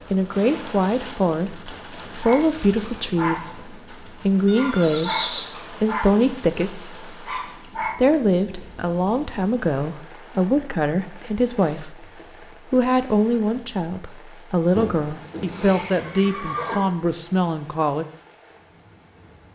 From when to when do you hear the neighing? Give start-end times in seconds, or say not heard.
4.5-5.5, 14.7-16.9.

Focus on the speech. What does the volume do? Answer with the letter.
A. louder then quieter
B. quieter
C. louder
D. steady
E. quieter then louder
D.